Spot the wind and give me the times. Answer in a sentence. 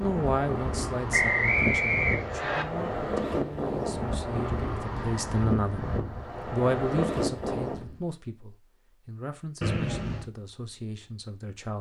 The wind can be heard from 0.0 to 8.1 s.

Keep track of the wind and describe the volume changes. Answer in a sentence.
The loudness of the wind stays about the same.